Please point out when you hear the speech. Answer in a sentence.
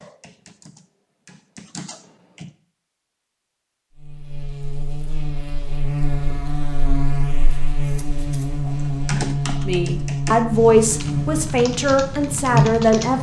The speech can be heard from 9.7 to 13.1 s.